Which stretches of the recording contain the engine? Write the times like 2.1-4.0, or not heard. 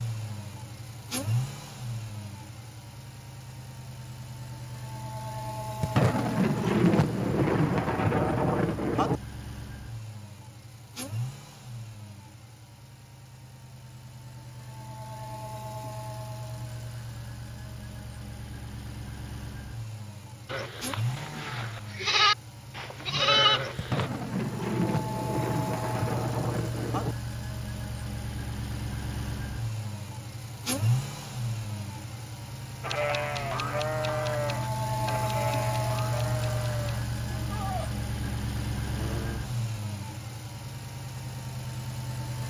0.0-42.4.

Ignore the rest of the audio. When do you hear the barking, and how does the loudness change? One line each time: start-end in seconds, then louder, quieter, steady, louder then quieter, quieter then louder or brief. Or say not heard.
not heard.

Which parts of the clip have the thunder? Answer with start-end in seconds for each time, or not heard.
5.8-9.2, 23.8-27.1.